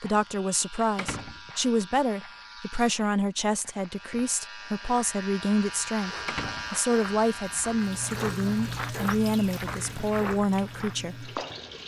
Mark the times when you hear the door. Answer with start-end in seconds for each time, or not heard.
0.9-1.9, 6.2-7.2.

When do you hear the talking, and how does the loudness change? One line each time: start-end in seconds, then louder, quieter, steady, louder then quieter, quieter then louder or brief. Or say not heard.
0.0-11.3 steady.